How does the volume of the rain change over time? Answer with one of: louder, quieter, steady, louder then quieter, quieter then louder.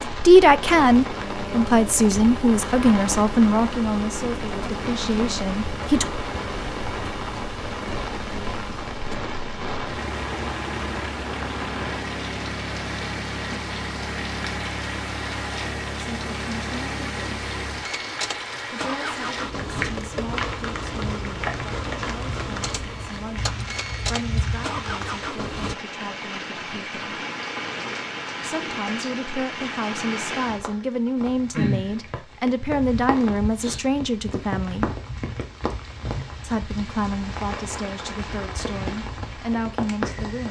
steady.